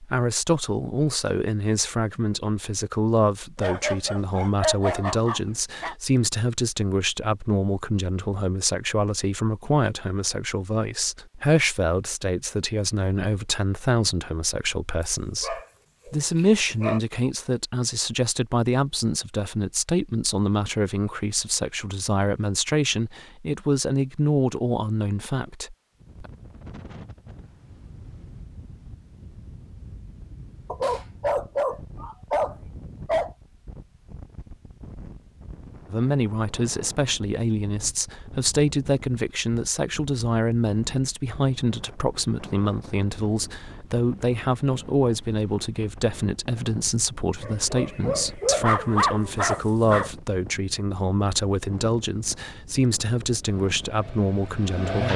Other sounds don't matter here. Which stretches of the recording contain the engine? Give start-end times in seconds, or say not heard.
53.4-55.1.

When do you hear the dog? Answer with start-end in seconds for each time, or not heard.
3.6-6.0, 15.0-17.0, 30.7-33.3, 47.4-50.1.